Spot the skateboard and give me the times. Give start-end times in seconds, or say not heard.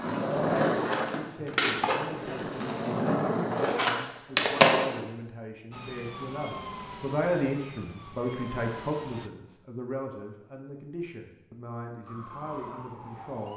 0.0-5.0.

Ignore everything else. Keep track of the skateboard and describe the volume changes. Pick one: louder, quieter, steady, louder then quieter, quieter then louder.
quieter then louder.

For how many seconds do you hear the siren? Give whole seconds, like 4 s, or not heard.
5 s.